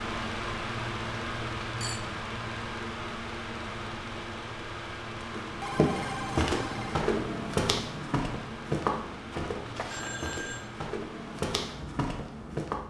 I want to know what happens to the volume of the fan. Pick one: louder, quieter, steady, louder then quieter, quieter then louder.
quieter.